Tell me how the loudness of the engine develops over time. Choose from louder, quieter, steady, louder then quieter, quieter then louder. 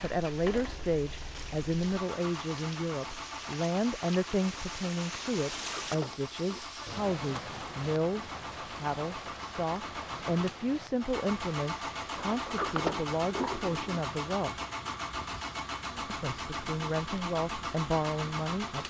louder.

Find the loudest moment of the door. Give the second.
13 s.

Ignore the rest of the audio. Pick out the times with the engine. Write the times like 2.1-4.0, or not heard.
0.0-18.8.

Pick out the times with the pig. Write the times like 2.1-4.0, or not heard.
not heard.